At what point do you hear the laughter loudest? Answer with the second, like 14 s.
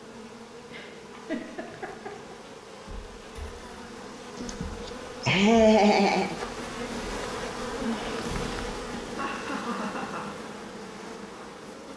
6 s.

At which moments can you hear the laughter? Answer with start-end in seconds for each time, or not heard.
0.7-2.4, 4.3-6.3, 9.2-10.3.